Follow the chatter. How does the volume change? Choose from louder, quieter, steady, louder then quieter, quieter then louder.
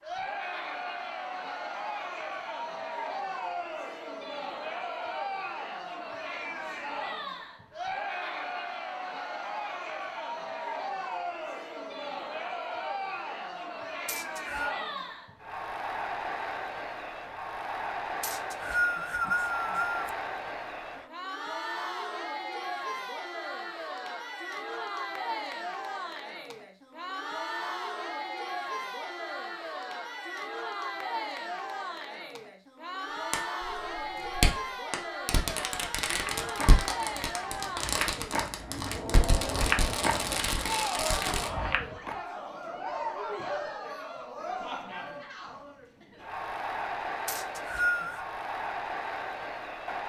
steady.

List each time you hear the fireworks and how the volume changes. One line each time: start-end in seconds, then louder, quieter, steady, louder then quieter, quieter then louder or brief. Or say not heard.
33.3-41.5 steady.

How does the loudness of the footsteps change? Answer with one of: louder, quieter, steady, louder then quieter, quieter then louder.
louder then quieter.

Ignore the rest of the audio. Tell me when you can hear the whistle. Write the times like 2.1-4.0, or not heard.
14.1-14.8, 18.2-20.1, 47.2-48.2.